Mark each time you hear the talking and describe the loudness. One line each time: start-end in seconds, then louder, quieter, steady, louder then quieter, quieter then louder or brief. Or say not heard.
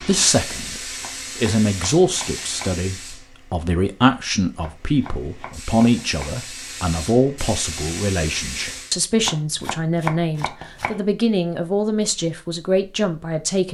0.0-13.6 steady.